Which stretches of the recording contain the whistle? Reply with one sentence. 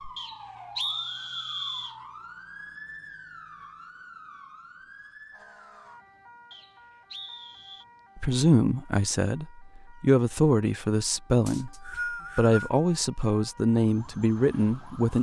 You can hear the whistle from 0.1 to 1.9 s, from 6.5 to 7.8 s and from 11.4 to 12.7 s.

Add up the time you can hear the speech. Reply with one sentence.
You can hear the speech for 7 seconds altogether.